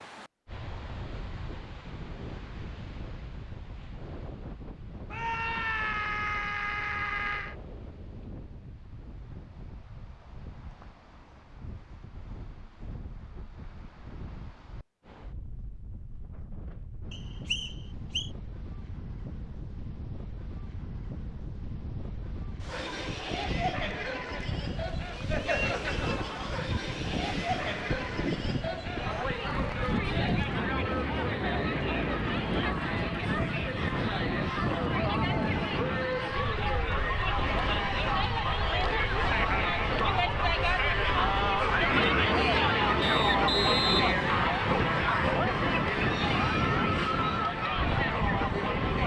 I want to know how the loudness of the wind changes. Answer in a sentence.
The loudness of the wind goes up.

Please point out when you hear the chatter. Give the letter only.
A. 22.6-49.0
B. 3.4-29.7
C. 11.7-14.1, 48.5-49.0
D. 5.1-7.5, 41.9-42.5
A.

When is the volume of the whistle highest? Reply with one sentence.
The loudest moment of the whistle is at 44 seconds.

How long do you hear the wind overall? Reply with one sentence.
The wind can be heard for 49 seconds in total.